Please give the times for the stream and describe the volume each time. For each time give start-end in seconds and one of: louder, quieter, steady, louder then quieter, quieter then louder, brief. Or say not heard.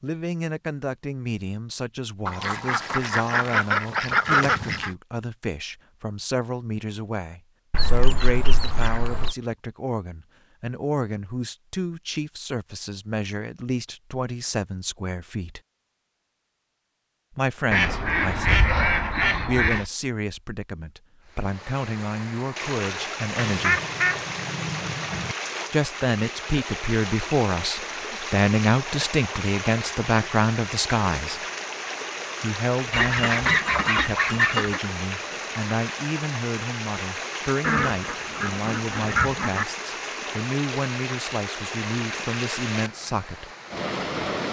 21.3-44.4 steady.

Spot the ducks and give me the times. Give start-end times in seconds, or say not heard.
2.2-4.9, 7.7-9.3, 17.7-19.9, 23.4-25.4, 32.9-34.8, 37.6-39.6.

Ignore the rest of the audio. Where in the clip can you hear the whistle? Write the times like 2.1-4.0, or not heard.
not heard.